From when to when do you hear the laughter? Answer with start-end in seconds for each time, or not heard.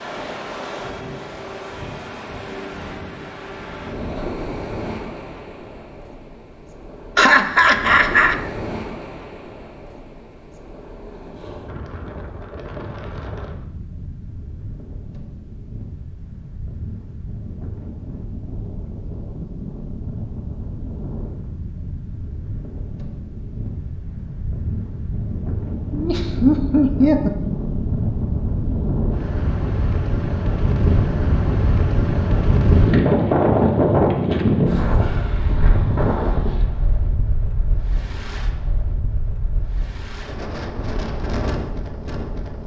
7.2-8.3, 25.9-27.3.